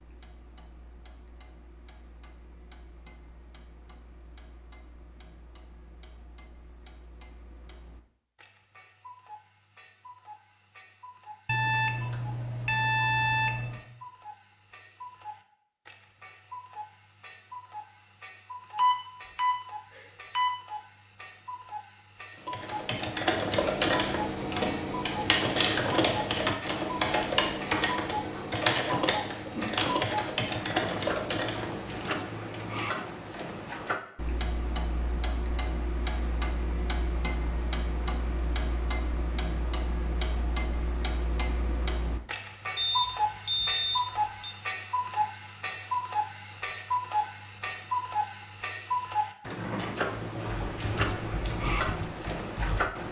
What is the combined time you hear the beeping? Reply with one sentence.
The beeping can be heard for 6 seconds in total.